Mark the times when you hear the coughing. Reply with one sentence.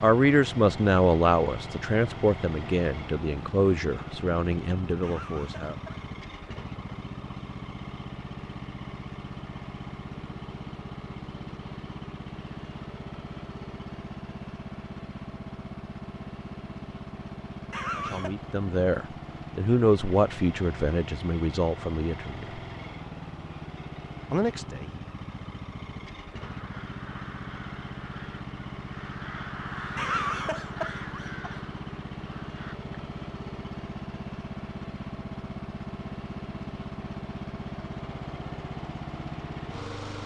You can hear the coughing from 5.0 to 6.1 s, from 17.7 to 18.4 s and from 29.9 to 31.6 s.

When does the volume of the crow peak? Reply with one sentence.
The loudest moment of the crow is at 30 seconds.